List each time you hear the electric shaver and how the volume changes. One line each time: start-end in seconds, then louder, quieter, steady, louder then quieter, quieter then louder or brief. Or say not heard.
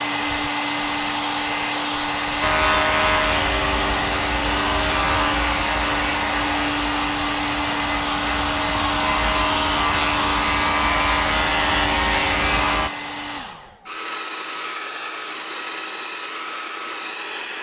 2.4-12.9 quieter then louder.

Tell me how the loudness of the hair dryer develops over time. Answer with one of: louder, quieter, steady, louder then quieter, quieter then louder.
quieter.